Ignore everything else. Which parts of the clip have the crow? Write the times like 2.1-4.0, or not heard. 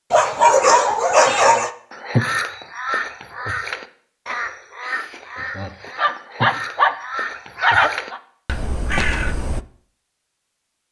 1.9-9.6.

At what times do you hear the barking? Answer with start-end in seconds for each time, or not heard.
0.1-1.7, 6.0-7.0, 7.5-8.2.